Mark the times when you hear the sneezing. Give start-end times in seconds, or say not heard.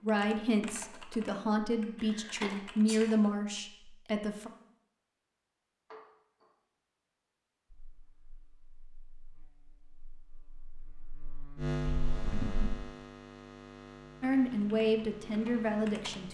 2.0-3.0, 5.9-6.5, 11.9-12.8.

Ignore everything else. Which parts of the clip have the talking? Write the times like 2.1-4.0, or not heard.
0.0-4.5, 14.2-16.3.